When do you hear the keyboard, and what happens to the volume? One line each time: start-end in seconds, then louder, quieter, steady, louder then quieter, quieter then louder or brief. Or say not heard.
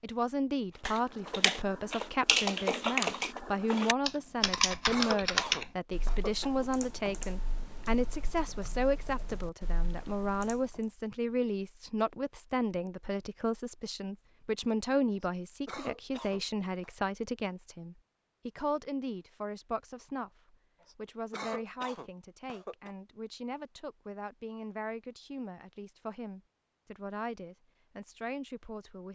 0.8-10.7 quieter.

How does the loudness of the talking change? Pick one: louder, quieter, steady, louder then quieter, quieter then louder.
quieter.